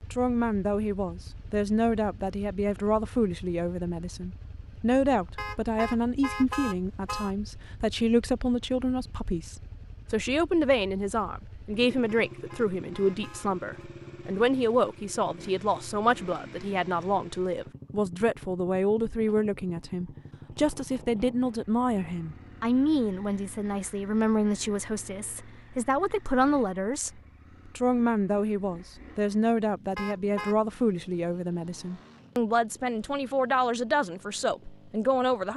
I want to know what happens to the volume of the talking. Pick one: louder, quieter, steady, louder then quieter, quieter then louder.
steady.